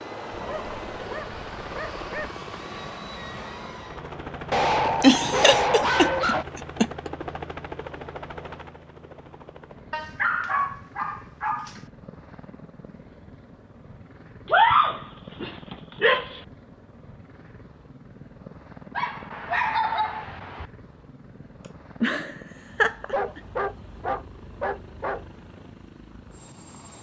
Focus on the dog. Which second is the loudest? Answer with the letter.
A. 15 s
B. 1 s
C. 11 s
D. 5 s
A.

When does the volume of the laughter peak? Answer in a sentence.
The loudest moment of the laughter is at 5 seconds.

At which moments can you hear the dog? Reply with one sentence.
The dog can be heard from 0.3 to 2.3 s, from 4.5 to 6.5 s, from 9.9 to 11.8 s, from 14.5 to 16.2 s, from 18.9 to 20.6 s and from 23.1 to 25.4 s.